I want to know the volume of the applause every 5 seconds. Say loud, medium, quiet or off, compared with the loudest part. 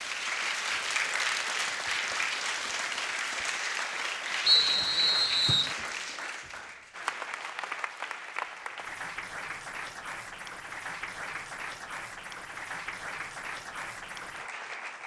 loud, medium, medium.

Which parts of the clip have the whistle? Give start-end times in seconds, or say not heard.
4.5-5.8.